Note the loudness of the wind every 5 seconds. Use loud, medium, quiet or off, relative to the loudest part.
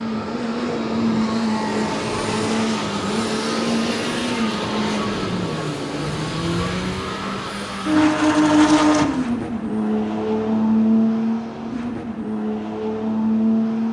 loud, loud, off.